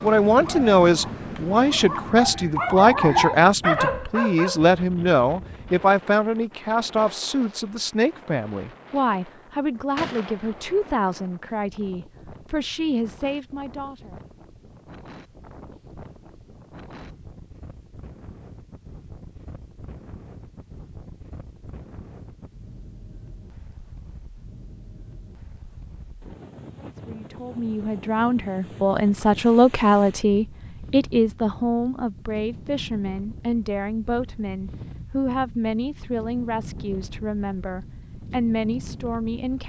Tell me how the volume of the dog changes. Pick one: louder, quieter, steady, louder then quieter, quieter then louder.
louder.